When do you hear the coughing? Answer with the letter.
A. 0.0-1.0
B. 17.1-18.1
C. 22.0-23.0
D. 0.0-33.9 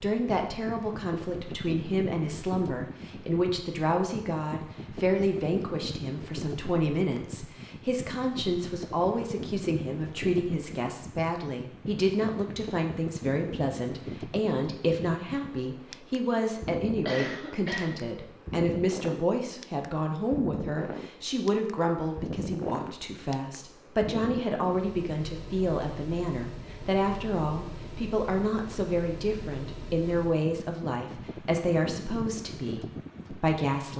B.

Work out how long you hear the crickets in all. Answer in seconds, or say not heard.
not heard.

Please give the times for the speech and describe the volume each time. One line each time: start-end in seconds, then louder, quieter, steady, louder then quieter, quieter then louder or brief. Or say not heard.
0.0-33.9 steady.